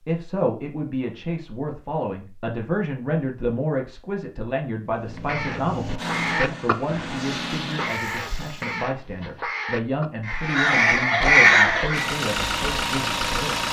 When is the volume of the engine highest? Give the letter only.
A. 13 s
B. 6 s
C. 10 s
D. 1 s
A.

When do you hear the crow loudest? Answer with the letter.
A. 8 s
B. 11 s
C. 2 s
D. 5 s
B.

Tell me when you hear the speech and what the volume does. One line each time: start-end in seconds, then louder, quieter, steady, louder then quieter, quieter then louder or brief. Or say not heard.
0.0-13.6 steady.